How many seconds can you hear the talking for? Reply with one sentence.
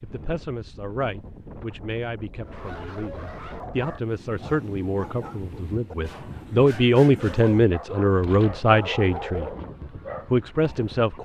The talking can be heard for 11 seconds in total.